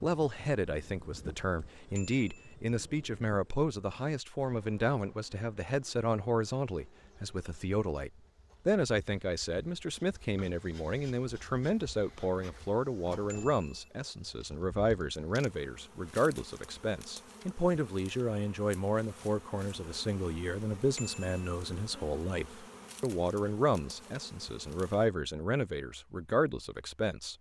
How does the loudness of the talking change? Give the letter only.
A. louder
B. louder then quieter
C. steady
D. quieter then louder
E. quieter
C.